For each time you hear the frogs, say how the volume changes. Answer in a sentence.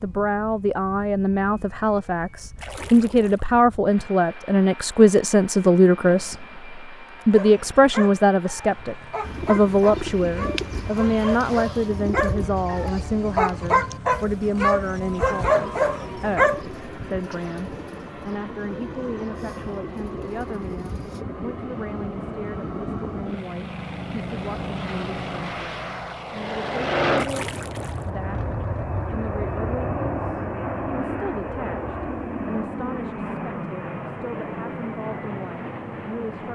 The frogs can't be heard in this clip.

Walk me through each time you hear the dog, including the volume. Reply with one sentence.
The dog can be heard from 7.3 to 16.6 s, getting louder.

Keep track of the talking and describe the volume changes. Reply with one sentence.
The volume of the talking goes down.